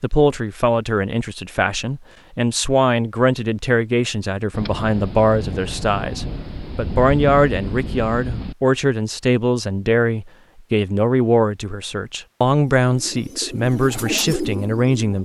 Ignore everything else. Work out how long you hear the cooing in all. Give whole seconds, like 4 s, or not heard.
2 s.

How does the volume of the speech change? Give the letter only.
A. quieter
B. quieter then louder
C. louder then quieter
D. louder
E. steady
E.